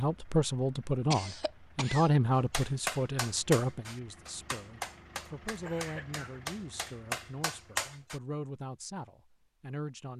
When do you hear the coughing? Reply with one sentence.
The coughing can be heard from 1.1 to 2.1 s and from 5.6 to 6.4 s.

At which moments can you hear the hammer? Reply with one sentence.
The hammer can be heard from 2.5 to 8.2 s.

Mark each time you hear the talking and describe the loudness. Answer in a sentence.
The talking can be heard from 0.0 to 10.1 s, getting quieter.